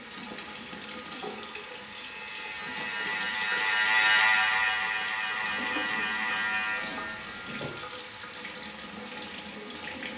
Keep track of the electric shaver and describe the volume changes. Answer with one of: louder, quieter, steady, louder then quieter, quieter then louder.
louder then quieter.